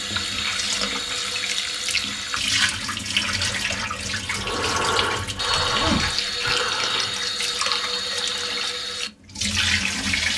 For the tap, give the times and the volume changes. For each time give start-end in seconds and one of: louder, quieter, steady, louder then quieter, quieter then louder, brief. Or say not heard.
0.0-10.3 steady.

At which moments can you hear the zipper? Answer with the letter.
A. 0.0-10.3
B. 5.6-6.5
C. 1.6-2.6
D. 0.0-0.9
B.